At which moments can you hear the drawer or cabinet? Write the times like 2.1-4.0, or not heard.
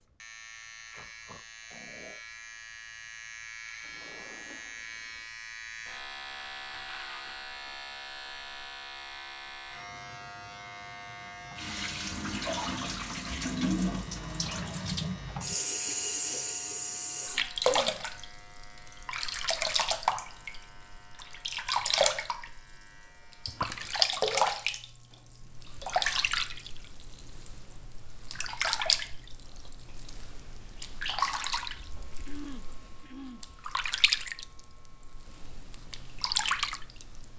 3.8-5.3, 23.4-24.0.